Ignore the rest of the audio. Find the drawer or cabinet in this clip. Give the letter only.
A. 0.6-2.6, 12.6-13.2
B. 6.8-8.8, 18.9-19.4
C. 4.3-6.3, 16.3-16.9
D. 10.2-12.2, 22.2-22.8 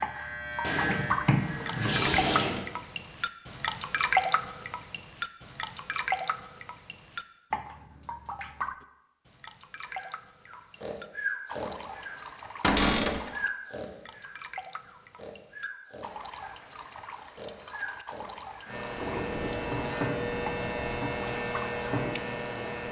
A.